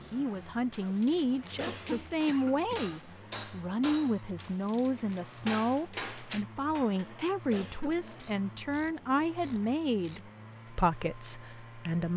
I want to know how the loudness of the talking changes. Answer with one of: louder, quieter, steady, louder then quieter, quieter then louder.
steady.